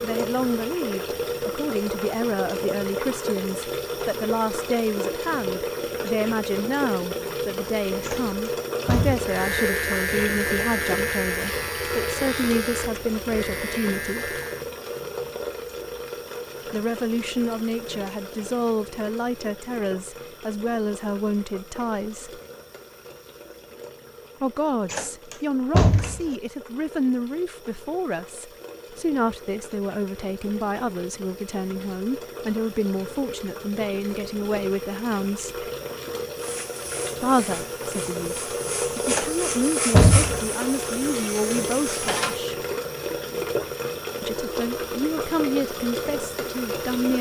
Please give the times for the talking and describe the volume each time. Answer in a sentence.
You can hear the talking from 0.0 to 14.3 s, at a steady volume; from 16.7 to 22.4 s, at a steady volume; from 24.4 to 35.6 s, at a steady volume; from 37.2 to 42.5 s, getting louder; and briefly from 44.2 to 47.1 s.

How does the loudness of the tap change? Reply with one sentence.
The loudness of the tap goes down, then up.